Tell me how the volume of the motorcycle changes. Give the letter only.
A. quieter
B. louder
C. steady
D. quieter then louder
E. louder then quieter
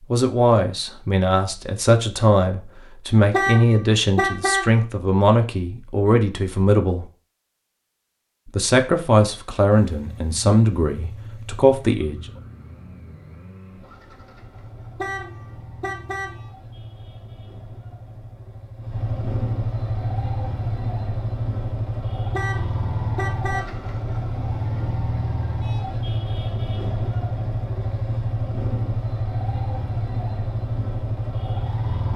B.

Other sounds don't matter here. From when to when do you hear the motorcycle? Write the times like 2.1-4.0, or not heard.
9.7-32.1.